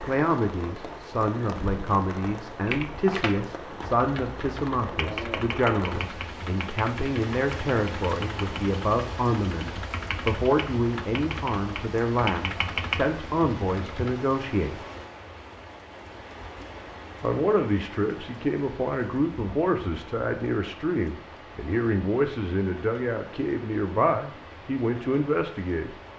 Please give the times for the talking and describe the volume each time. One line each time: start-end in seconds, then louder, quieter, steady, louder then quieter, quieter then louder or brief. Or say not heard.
0.0-14.8 steady
17.2-25.9 steady.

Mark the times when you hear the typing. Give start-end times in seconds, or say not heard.
2.6-14.2.